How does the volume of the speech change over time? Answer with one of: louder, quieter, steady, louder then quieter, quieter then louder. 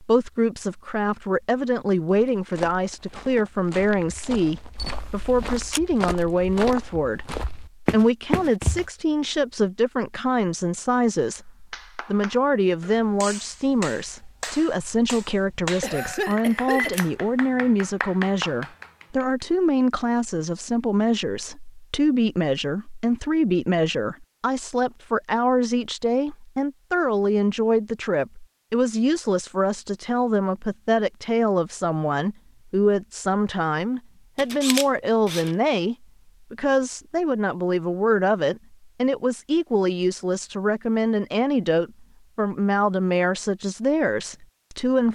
steady.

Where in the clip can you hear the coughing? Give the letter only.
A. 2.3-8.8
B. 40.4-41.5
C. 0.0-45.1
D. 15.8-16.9
D.